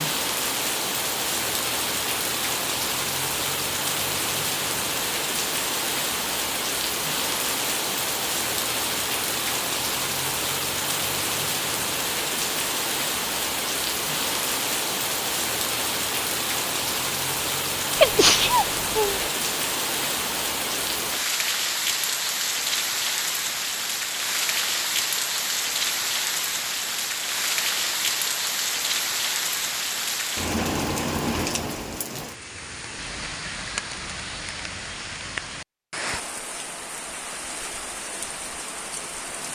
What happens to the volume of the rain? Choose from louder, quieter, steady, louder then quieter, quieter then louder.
quieter.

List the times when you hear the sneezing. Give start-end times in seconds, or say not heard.
17.9-19.3.